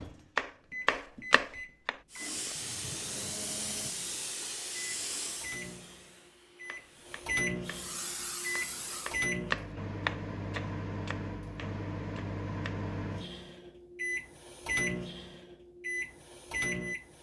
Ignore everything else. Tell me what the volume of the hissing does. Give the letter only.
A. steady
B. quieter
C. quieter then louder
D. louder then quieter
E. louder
C.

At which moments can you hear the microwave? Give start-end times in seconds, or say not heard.
0.0-17.1.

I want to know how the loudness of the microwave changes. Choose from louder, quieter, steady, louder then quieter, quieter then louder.
louder.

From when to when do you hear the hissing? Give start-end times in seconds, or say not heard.
2.1-9.2.